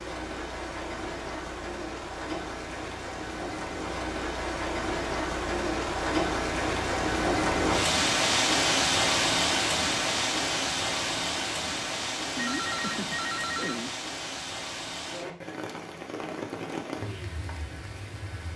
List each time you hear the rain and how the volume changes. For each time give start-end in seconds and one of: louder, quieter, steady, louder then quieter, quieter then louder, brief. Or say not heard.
0.0-18.5 louder then quieter.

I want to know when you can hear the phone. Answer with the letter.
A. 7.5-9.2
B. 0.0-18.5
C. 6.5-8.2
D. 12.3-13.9
D.